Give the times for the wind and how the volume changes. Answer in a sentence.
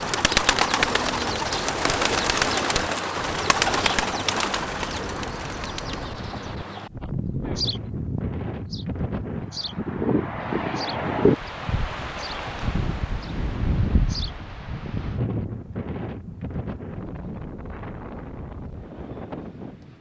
You can hear the wind from 0.0 to 19.9 s, getting louder then quieter.